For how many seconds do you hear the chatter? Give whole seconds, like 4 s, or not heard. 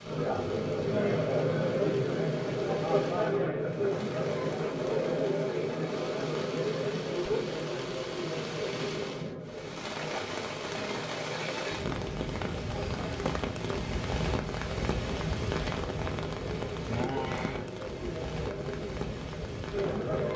20 s.